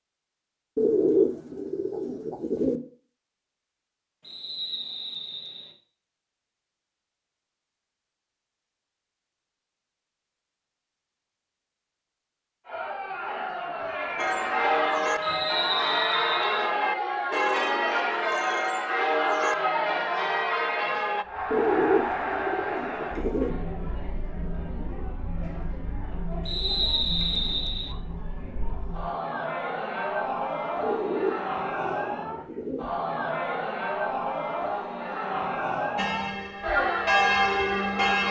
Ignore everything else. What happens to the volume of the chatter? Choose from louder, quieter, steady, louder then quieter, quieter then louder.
quieter then louder.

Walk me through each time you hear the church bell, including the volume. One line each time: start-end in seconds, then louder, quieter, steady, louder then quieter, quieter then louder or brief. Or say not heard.
14.2-21.2 steady
36.0-38.2 brief.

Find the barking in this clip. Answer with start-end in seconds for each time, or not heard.
not heard.